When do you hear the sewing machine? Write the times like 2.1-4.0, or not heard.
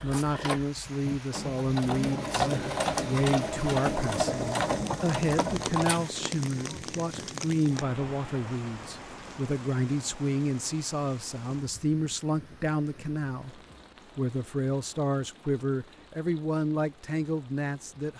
0.0-6.1.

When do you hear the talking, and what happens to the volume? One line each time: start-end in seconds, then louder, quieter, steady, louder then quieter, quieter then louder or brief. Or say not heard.
0.0-18.1 steady.